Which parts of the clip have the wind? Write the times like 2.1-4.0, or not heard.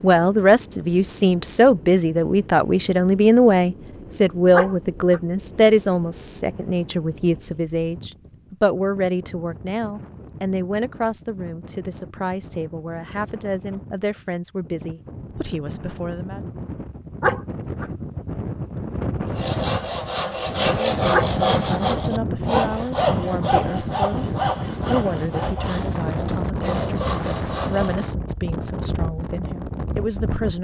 0.0-30.5.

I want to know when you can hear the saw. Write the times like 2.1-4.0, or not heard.
19.2-28.1.